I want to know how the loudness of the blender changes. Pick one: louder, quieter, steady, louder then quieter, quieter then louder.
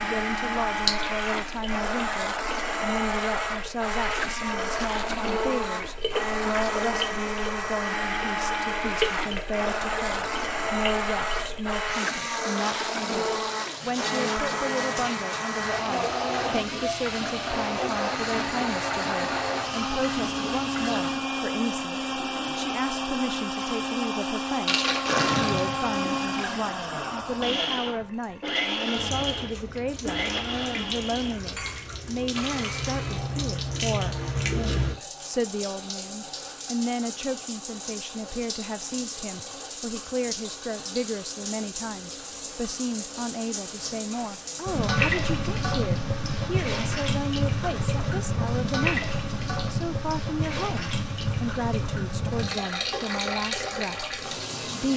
steady.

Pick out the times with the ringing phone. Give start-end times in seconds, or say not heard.
not heard.